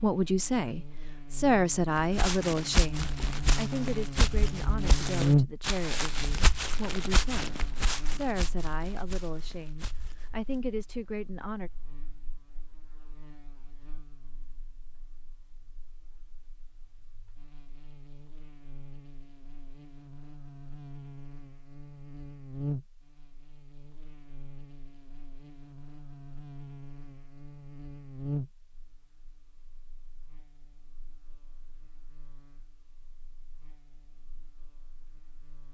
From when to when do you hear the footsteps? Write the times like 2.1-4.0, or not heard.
1.9-10.6.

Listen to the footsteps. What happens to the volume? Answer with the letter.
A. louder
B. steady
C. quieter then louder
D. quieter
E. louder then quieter
D.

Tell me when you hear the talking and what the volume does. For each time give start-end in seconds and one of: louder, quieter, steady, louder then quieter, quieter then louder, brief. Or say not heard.
0.0-11.7 quieter.